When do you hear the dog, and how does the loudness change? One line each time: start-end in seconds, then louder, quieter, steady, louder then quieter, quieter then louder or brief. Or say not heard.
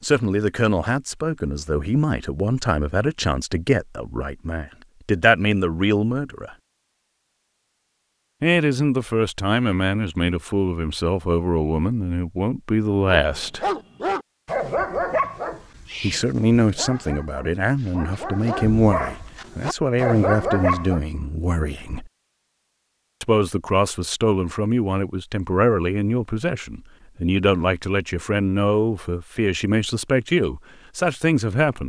13.2-21.0 quieter then louder.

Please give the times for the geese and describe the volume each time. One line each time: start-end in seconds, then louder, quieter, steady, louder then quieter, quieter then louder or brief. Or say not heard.
not heard.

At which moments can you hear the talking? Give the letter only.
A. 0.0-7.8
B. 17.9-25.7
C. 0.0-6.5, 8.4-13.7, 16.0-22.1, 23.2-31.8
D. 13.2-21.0
C.